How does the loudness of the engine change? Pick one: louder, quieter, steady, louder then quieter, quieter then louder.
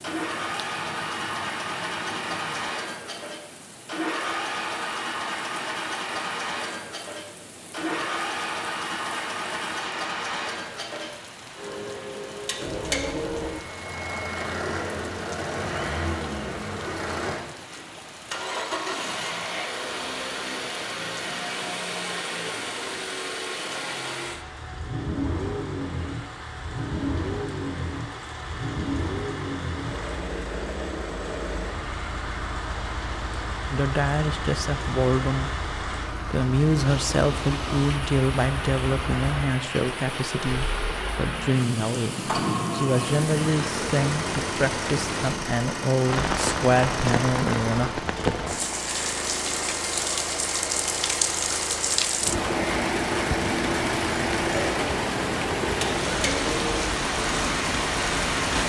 steady.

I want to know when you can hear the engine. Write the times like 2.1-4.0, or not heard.
0.0-58.6.